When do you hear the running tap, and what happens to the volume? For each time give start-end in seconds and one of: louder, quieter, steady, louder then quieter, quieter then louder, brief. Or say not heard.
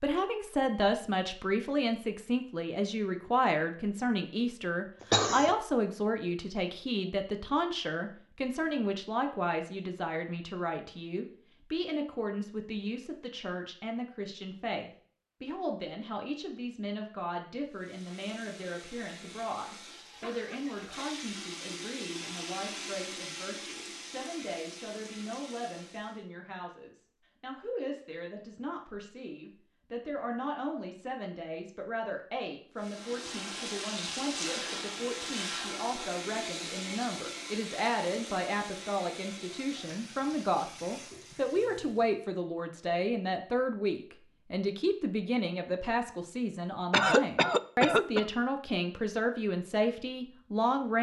17.7-26.2 louder then quieter
32.8-42.2 quieter.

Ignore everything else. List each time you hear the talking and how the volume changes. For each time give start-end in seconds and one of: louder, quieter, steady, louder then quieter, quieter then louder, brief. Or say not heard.
0.0-50.9 quieter then louder.